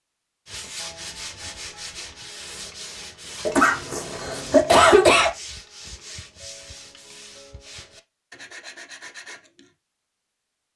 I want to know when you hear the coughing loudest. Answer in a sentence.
The volume of the coughing peaks at 5 seconds.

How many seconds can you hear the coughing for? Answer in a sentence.
You can hear the coughing for 2 seconds altogether.